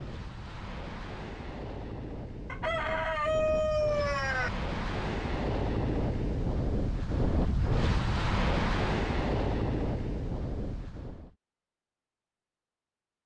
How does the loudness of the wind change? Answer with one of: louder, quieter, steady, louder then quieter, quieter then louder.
louder.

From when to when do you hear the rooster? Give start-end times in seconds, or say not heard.
2.5-4.5.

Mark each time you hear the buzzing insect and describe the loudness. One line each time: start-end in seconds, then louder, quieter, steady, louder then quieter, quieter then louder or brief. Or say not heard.
not heard.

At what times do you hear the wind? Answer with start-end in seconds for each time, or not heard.
0.0-11.3.